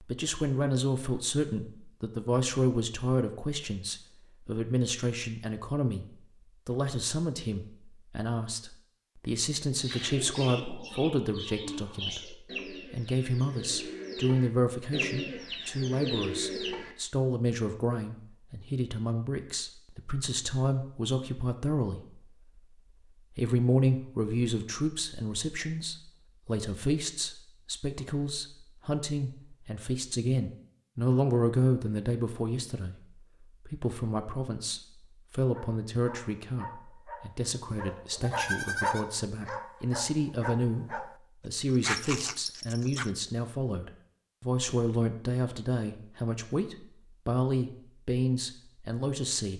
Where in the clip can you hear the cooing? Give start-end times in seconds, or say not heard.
9.8-16.9.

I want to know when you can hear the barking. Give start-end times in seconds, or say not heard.
35.5-43.1.